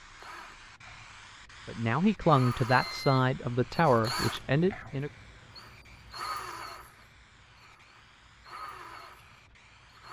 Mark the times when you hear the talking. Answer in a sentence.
You can hear the talking from 1.6 to 5.1 s.